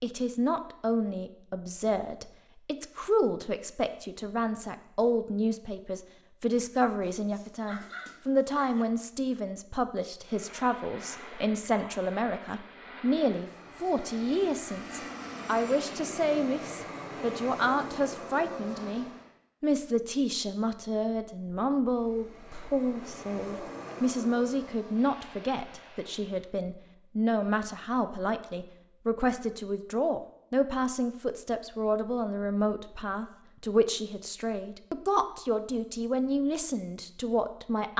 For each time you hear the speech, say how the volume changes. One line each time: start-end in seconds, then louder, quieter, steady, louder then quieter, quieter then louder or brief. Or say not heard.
0.0-37.9 steady.